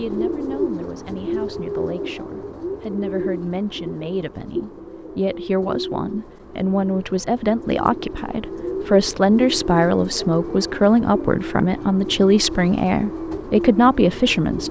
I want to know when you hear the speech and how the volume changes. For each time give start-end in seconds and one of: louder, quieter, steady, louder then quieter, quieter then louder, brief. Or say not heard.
0.0-14.6 louder.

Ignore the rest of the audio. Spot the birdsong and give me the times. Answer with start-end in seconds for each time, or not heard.
0.0-14.6.